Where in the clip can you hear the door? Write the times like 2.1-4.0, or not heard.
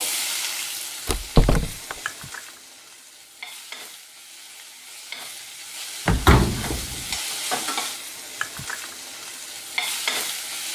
1.1-1.9, 6.0-7.0.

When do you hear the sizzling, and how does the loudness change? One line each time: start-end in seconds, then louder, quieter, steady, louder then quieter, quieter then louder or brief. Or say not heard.
0.0-10.7 quieter then louder.